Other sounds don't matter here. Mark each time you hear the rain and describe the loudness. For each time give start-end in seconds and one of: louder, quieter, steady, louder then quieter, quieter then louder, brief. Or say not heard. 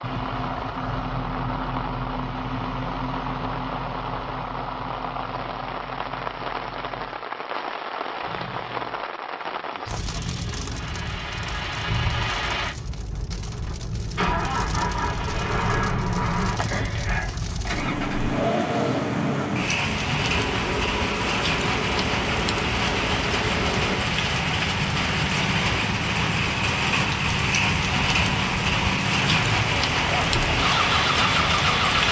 0.0-32.0 louder.